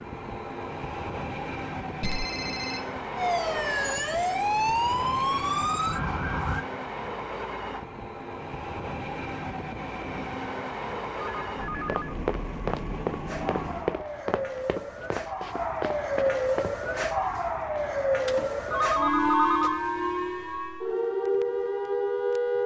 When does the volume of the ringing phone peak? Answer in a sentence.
The loudest moment of the ringing phone is at 19 seconds.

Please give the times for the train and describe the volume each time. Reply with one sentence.
The train can be heard from 0.0 to 14.0 s, at a steady volume.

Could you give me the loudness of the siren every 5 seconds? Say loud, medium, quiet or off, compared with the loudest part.
loud, loud, medium, loud, loud.